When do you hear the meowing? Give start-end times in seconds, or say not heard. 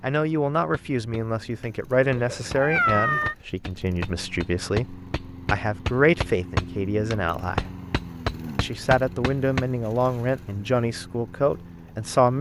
2.1-3.4.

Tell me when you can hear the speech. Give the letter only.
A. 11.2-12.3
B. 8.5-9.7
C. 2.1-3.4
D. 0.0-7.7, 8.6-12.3
D.